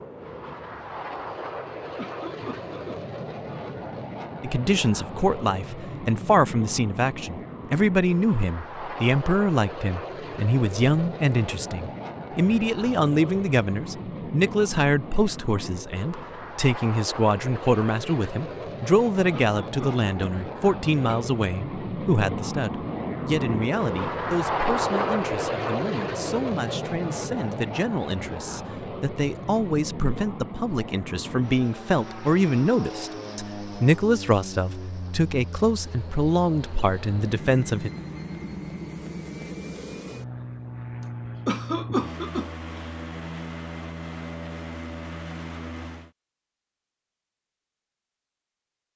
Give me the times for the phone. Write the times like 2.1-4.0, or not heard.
not heard.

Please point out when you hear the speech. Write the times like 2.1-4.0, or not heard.
4.4-37.9.